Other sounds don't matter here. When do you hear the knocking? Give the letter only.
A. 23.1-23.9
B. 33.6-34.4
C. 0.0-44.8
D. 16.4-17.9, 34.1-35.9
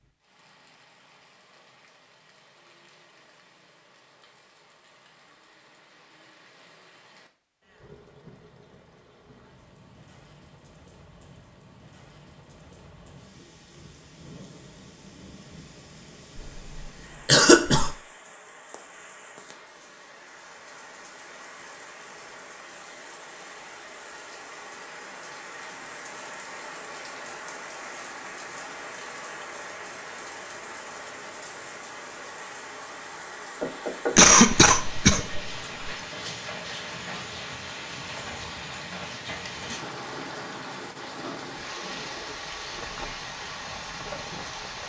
B.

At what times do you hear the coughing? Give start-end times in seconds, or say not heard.
16.4-17.9, 34.1-35.9.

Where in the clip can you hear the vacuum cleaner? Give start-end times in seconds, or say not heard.
not heard.